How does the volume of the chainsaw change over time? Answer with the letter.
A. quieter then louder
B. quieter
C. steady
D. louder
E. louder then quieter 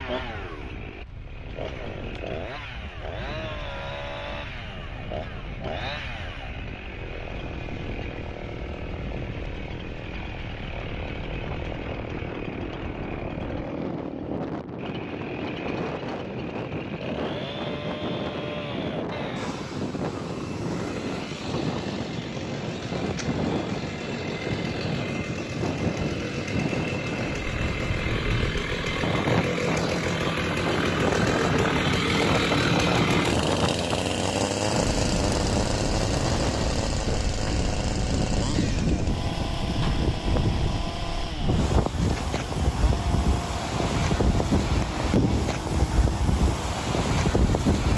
E.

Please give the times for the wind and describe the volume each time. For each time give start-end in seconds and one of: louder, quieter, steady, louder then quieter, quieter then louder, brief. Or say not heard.
0.0-47.9 louder.